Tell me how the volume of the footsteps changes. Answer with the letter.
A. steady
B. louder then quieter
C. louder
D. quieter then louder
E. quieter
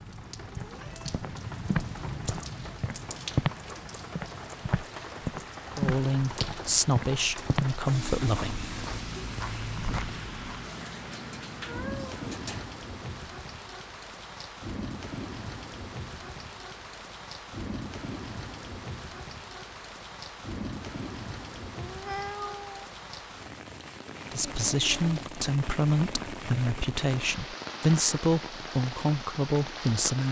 E.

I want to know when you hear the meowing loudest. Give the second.
22 s.